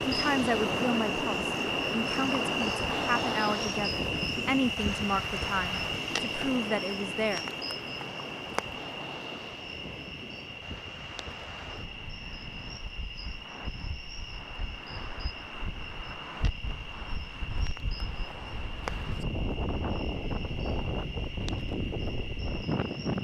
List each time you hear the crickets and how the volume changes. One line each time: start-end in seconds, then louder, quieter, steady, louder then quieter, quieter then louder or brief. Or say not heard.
0.0-23.1 quieter.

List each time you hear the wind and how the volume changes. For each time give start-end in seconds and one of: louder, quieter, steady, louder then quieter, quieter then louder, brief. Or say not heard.
0.0-23.1 quieter then louder.